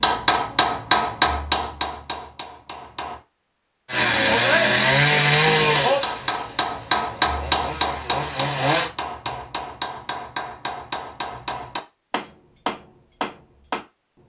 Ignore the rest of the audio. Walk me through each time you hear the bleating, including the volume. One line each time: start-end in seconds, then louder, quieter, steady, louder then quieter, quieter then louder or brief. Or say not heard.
not heard.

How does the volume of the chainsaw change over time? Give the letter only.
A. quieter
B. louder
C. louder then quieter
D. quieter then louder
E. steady
D.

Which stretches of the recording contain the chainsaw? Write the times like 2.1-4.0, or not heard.
3.9-8.9.